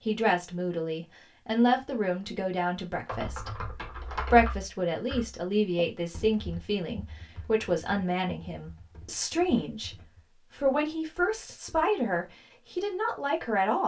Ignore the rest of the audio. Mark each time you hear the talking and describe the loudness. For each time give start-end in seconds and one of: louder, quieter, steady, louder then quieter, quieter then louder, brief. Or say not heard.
0.1-13.8 steady.